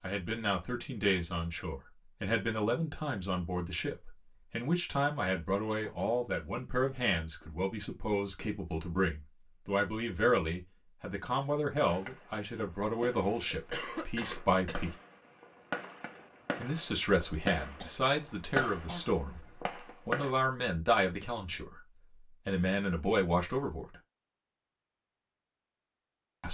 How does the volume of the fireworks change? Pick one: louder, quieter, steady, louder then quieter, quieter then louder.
louder.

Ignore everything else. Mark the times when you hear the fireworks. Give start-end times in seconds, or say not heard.
11.8-20.3.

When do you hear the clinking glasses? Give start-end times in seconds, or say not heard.
not heard.